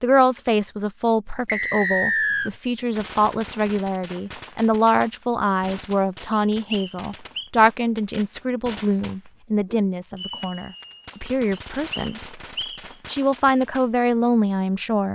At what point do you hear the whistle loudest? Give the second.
2 s.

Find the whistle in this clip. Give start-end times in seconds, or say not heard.
1.4-2.5, 6.3-7.5, 11.5-12.8.